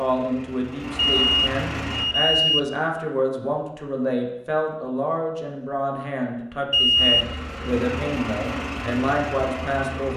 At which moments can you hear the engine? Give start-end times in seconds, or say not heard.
0.0-2.0, 7.0-10.1.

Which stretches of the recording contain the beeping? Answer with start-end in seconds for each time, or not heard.
0.9-2.6, 6.7-7.3.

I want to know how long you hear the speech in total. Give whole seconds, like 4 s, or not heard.
10 s.